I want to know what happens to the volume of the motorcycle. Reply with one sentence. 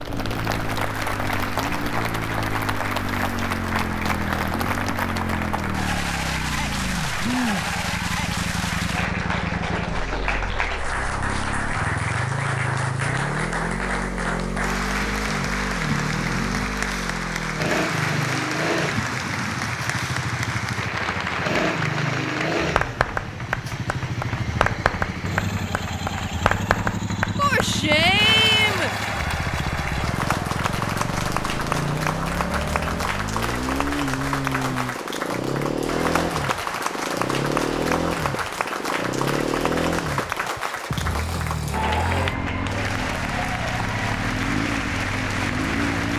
The volume of the motorcycle stays about the same.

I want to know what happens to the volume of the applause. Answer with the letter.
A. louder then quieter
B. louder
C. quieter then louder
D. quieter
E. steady
E.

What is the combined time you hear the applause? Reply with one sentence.
The applause can be heard for 46 seconds in total.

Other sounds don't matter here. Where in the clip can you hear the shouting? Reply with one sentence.
You can hear the shouting from 27.4 to 28.9 s.